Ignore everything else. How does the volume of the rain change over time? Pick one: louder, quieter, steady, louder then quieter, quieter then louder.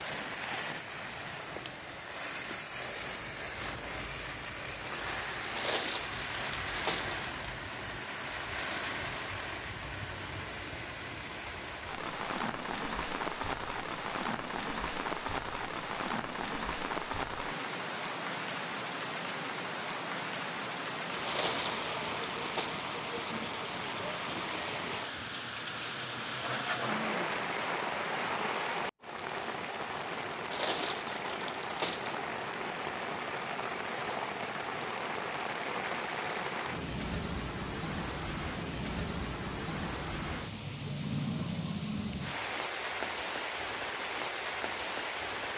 steady.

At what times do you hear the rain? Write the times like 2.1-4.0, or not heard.
0.0-45.5.